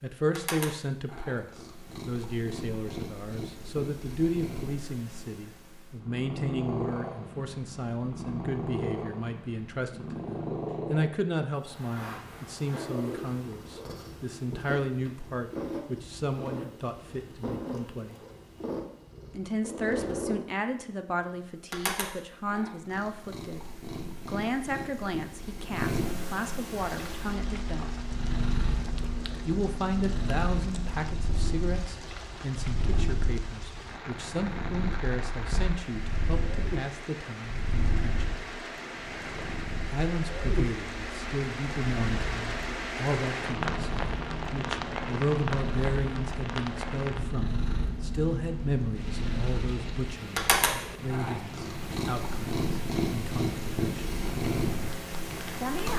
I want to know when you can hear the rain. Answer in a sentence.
You can hear the rain from 26.8 to 55.9 s.